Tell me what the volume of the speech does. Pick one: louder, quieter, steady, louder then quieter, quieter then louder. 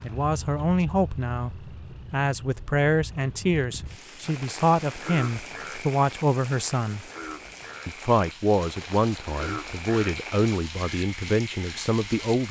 steady.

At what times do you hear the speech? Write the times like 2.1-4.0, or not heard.
0.0-7.0, 7.8-12.4.